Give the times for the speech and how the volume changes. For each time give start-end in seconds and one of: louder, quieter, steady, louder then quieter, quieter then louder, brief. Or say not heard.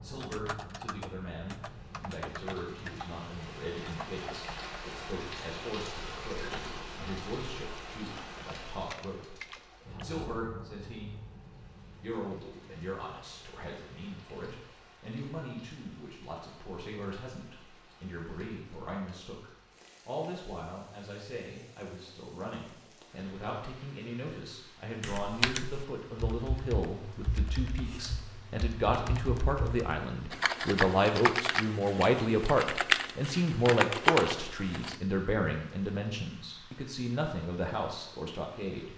0.0-11.2 steady
12.0-38.9 louder.